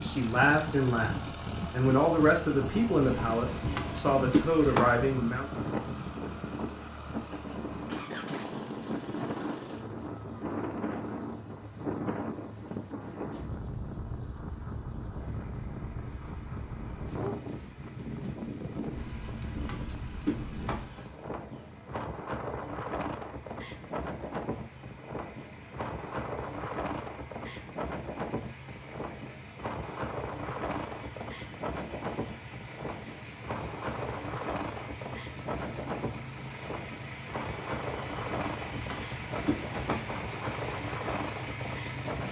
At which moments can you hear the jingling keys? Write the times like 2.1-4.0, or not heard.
3.0-5.0, 18.9-21.1, 38.1-40.2.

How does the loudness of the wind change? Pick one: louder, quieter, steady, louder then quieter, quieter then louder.
steady.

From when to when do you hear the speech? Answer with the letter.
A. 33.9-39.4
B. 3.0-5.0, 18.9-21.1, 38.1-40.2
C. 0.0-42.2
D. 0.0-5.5
D.